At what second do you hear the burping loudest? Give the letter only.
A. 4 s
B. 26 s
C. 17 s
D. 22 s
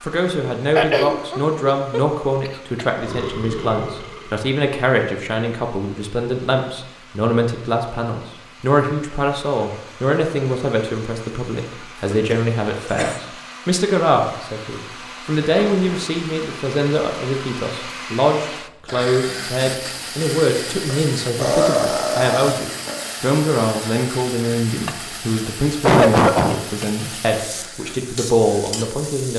D.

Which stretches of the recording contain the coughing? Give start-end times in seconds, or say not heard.
0.8-2.9, 12.2-13.2, 25.9-26.6.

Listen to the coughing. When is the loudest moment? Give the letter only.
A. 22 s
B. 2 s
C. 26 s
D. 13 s
C.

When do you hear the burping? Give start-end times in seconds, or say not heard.
3.0-4.4, 15.5-16.1, 20.9-23.1.